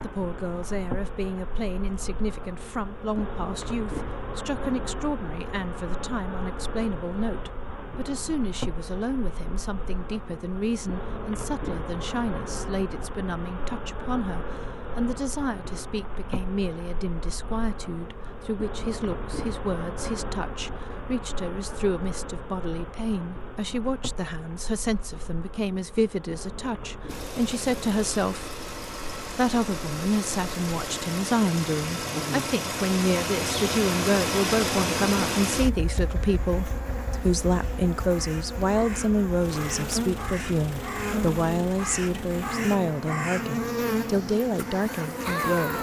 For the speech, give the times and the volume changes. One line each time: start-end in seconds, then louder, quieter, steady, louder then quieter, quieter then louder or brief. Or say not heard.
0.0-28.5 steady
29.4-45.7 steady.